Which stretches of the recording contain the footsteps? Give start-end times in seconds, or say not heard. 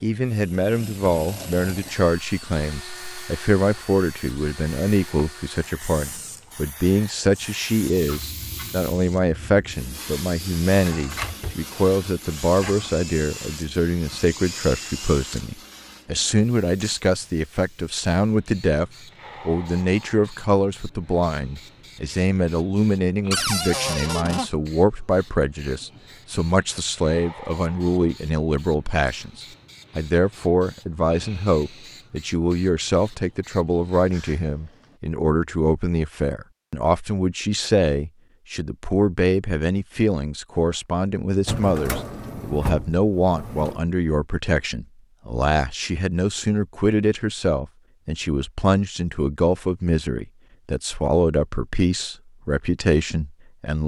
not heard.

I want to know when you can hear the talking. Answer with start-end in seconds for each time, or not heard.
0.0-53.8.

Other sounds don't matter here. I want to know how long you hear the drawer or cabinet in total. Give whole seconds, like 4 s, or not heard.
5 s.